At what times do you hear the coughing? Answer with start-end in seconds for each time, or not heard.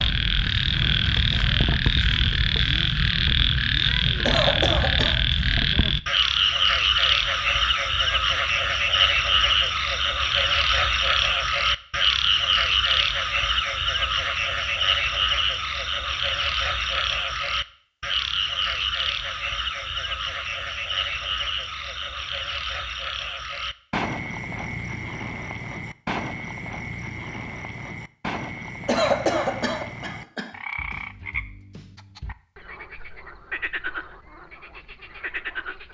4.2-5.2, 28.9-30.5.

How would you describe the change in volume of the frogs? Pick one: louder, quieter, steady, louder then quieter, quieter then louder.
quieter.